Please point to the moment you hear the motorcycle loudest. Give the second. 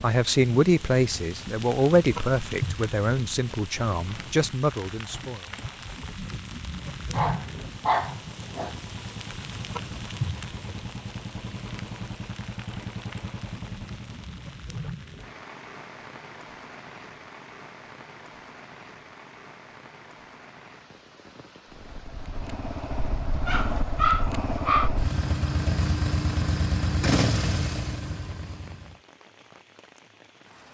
27 s.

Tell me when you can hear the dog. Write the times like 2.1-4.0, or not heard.
7.1-8.8, 23.4-24.9.